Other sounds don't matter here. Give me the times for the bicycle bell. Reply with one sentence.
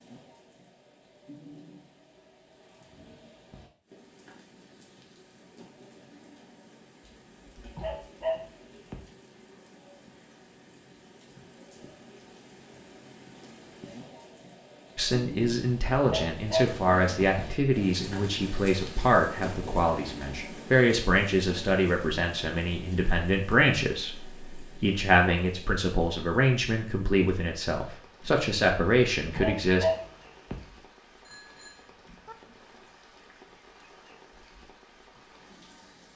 You can hear the bicycle bell from 31.2 to 32.4 s.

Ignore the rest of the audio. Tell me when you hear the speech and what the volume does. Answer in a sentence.
You can hear the speech from 14.9 to 29.9 s, at a steady volume.